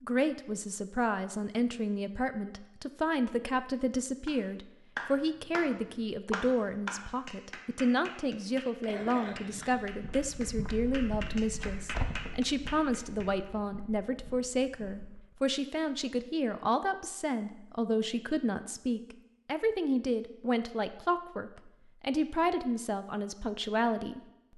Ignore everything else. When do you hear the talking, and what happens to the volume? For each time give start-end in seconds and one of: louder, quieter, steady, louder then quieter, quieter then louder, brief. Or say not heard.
0.0-24.2 steady.